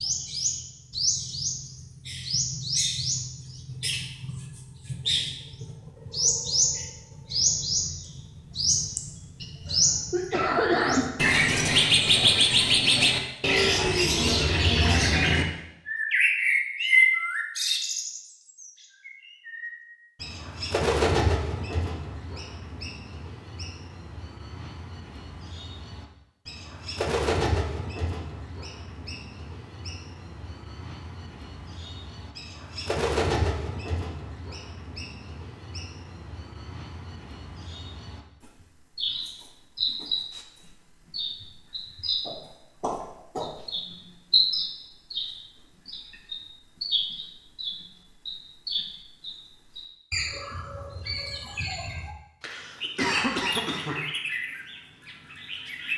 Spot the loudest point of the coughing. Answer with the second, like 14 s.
11 s.